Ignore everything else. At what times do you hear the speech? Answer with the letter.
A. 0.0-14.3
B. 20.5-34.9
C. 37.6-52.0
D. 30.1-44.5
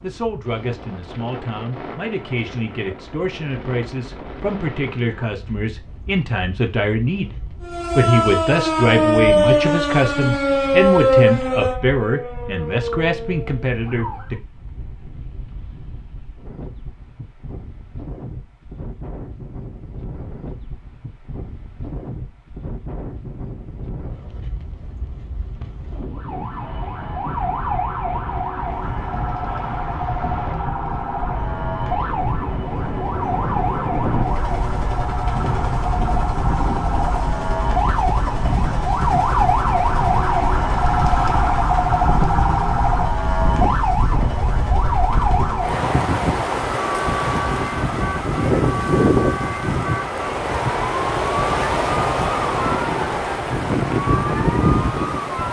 A.